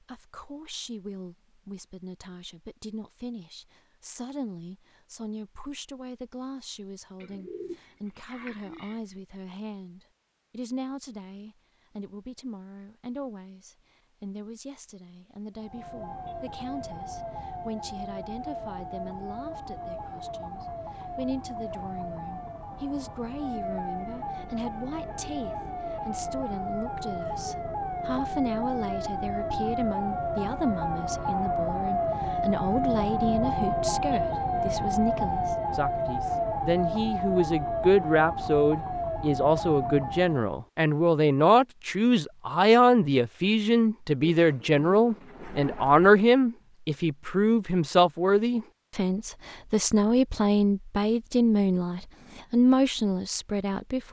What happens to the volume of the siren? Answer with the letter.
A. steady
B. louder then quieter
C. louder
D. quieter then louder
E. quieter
C.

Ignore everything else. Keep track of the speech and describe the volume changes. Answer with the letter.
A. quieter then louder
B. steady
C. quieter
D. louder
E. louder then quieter
D.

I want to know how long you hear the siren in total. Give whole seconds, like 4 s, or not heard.
25 s.